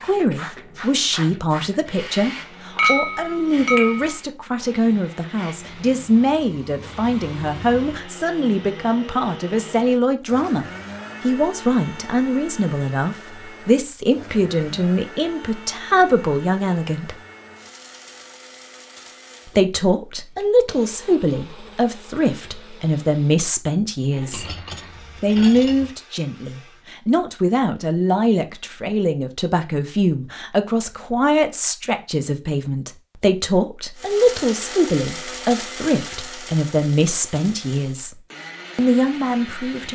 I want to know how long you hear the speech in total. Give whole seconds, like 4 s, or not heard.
36 s.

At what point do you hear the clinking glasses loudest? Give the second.
3 s.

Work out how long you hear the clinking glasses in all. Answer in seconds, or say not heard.
3 s.